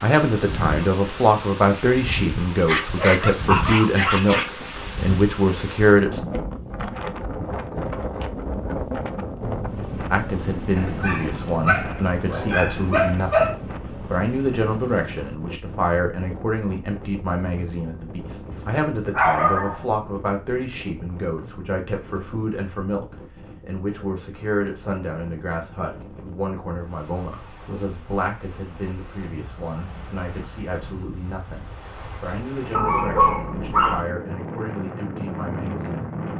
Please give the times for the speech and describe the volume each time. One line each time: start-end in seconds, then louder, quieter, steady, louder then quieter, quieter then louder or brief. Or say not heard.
0.0-6.2 steady
10.1-36.3 quieter.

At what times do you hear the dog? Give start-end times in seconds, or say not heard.
2.6-4.5, 10.8-13.6, 18.5-19.9, 32.7-34.0.